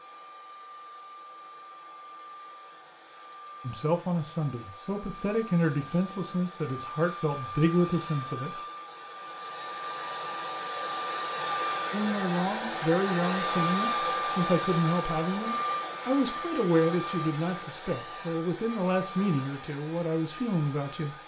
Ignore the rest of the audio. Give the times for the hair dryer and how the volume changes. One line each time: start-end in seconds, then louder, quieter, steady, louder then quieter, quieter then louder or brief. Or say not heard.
0.0-21.2 louder then quieter.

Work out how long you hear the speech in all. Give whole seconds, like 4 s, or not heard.
14 s.